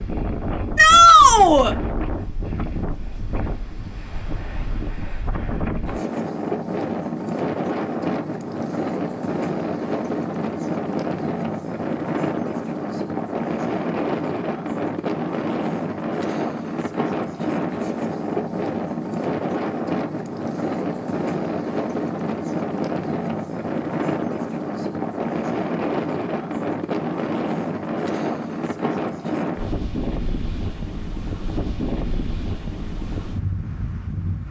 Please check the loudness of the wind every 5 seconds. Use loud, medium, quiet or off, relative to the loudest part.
medium, loud, loud, loud, loud, loud, medium.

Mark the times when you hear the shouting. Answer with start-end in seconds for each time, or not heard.
0.8-1.8.